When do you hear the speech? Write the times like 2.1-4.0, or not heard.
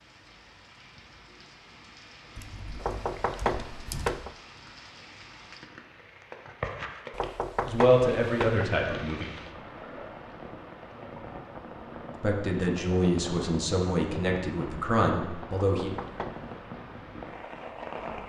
7.7-9.3, 12.2-15.9.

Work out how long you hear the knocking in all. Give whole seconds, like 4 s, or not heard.
4 s.